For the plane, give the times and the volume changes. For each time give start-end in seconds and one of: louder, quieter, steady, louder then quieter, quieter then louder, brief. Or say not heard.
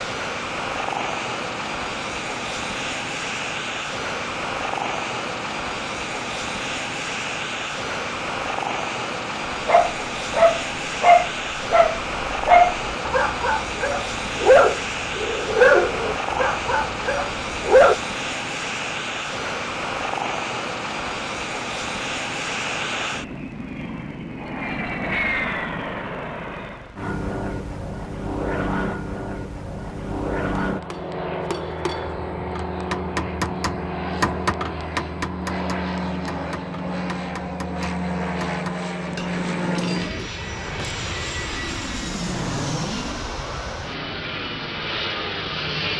0.0-45.9 steady.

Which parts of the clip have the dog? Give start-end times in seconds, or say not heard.
9.7-17.9.